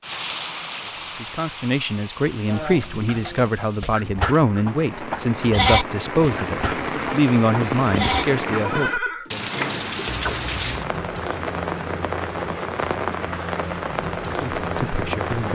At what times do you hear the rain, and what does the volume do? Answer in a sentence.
You can hear the rain from 0.0 to 15.5 s, getting louder.